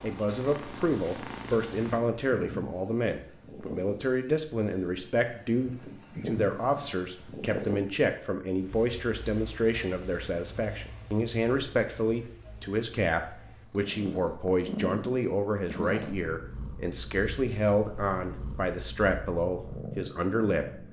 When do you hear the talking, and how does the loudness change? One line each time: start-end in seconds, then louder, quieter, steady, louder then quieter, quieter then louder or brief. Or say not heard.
0.0-20.8 steady.